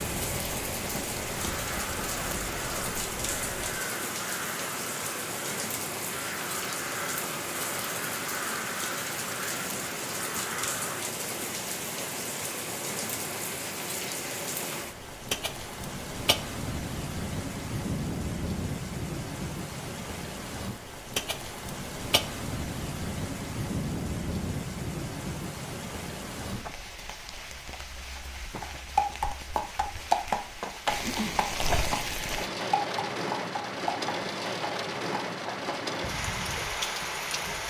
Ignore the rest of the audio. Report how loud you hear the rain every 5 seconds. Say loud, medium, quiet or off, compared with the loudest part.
loud, loud, loud, loud, loud, medium, loud, loud.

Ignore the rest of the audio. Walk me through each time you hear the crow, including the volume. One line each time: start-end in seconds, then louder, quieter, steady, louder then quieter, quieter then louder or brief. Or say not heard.
1.4-11.1 steady.